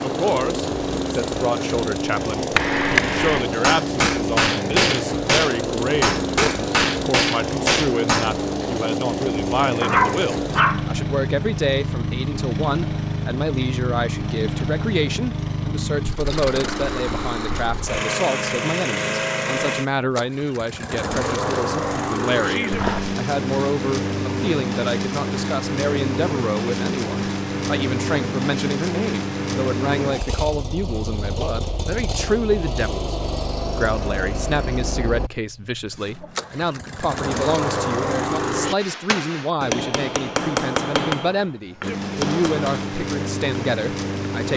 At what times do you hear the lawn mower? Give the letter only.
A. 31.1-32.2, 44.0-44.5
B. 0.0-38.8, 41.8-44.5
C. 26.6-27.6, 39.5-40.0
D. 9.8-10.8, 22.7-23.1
B.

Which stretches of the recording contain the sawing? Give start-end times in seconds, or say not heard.
not heard.